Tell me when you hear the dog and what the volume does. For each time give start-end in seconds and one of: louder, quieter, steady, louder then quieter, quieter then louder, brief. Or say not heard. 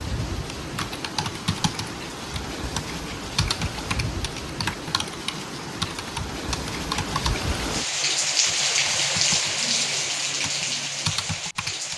not heard.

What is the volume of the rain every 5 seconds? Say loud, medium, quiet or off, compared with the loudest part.
medium, loud, loud.